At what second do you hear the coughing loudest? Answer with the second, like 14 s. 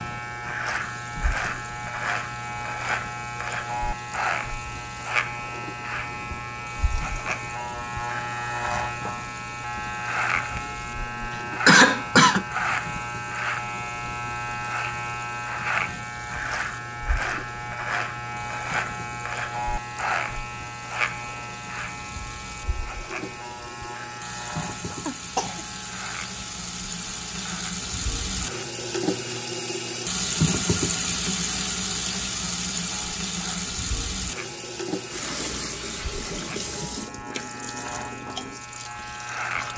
12 s.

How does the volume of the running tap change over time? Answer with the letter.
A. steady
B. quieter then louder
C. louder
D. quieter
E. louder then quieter
C.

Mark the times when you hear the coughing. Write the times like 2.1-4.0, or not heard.
11.7-12.4, 25.1-25.6.